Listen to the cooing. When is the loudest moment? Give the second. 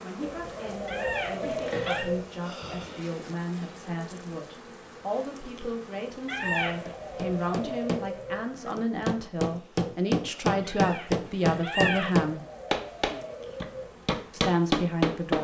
2 s.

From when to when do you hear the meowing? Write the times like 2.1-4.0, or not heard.
0.8-2.0, 6.2-7.0, 10.7-12.1.